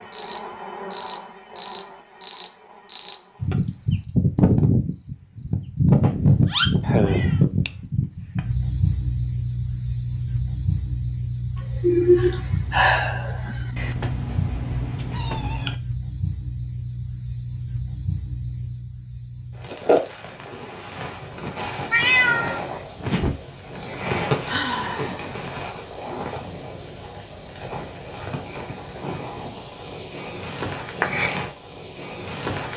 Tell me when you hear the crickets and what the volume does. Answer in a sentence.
The crickets can be heard from 0.0 to 32.7 s, getting quieter.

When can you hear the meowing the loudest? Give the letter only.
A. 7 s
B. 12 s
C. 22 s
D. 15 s
C.